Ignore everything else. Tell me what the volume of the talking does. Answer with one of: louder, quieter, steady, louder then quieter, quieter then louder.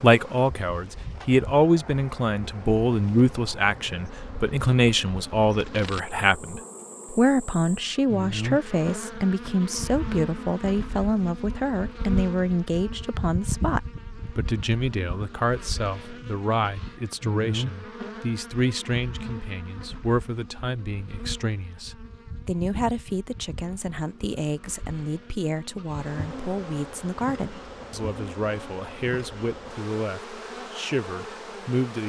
quieter.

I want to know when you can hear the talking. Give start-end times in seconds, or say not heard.
0.0-32.0.